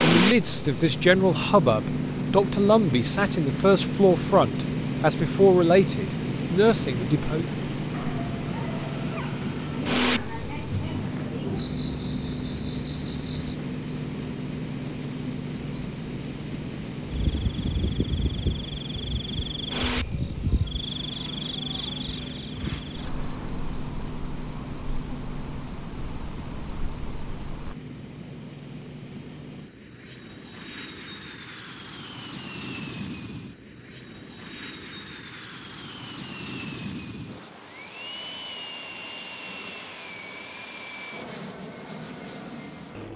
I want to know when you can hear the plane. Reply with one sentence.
You can hear the plane from 0.0 to 43.1 s.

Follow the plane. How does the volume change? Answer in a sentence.
The volume of the plane goes down.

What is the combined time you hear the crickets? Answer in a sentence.
The crickets can be heard for 28 seconds in total.